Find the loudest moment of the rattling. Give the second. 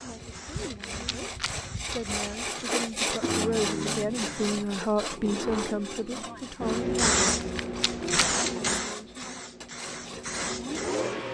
8 s.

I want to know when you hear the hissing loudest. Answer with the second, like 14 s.
7 s.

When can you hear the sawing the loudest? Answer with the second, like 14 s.
3 s.